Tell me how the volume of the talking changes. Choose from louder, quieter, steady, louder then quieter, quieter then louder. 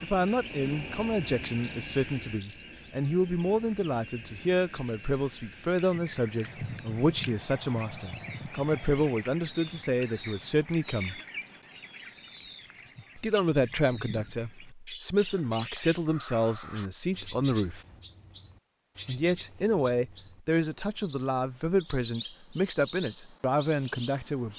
steady.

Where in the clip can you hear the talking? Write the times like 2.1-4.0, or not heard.
0.0-11.2, 13.2-17.8, 19.1-24.5.